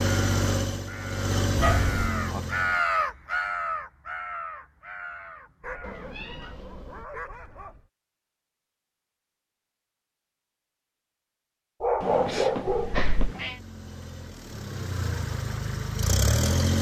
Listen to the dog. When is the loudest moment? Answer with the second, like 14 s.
12 s.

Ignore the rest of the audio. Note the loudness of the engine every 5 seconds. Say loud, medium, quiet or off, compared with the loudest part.
loud, off, quiet, loud.